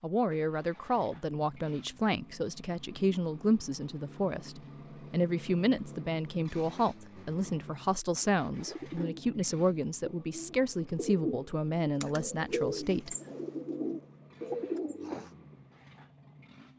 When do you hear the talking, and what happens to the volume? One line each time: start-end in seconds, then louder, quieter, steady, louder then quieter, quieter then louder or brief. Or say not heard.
0.0-13.2 steady.